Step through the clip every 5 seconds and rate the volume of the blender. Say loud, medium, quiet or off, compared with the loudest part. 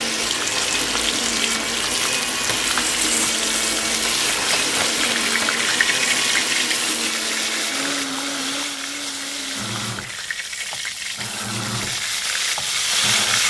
loud, loud, medium.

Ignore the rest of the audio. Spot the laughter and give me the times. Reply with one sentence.
The laughter can't be heard in this clip.